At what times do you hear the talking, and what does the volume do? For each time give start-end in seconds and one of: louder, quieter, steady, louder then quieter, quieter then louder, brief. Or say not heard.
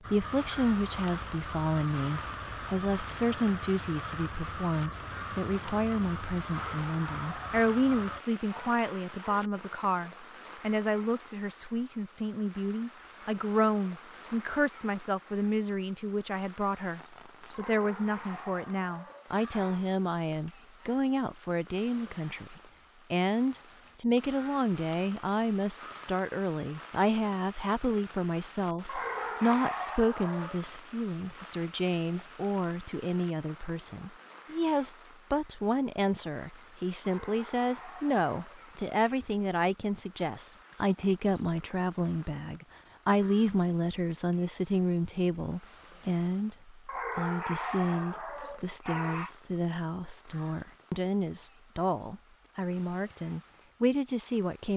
0.1-54.7 steady.